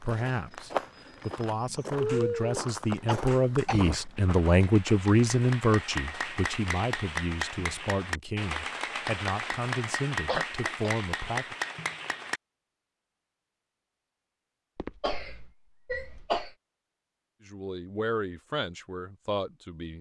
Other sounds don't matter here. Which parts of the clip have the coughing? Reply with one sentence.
The coughing can be heard from 2.0 to 4.0 s, from 10.2 to 11.3 s and from 14.8 to 16.6 s.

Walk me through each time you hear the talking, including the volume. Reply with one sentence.
You can hear the talking from 0.0 to 11.6 s, getting louder then quieter; and briefly from 17.4 to 19.9 s.